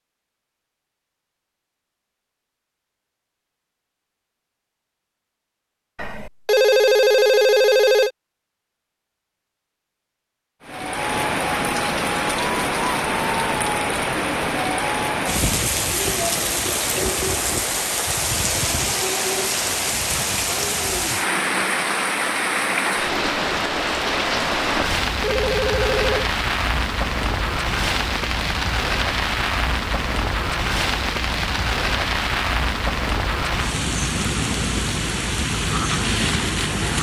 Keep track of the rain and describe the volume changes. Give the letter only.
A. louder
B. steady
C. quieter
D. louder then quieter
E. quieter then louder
B.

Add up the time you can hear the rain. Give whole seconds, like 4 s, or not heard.
26 s.